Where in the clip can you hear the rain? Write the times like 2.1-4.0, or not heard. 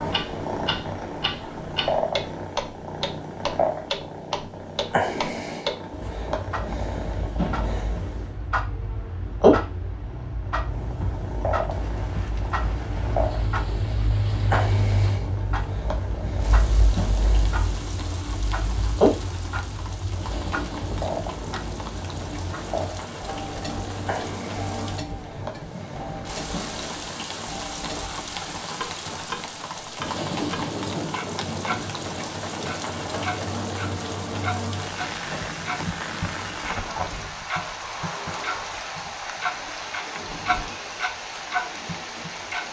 11.7-42.6.